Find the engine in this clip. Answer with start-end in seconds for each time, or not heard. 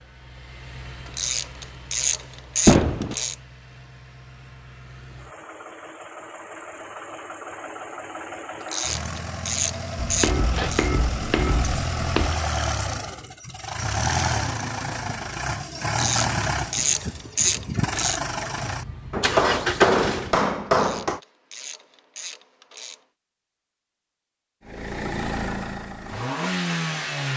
0.0-20.4, 24.6-27.3.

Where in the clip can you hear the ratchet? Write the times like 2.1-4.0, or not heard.
1.1-3.4, 8.7-10.9, 15.9-18.2, 20.8-23.0.